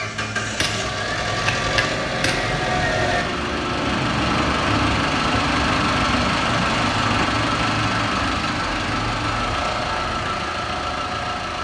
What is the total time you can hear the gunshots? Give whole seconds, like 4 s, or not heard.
2 s.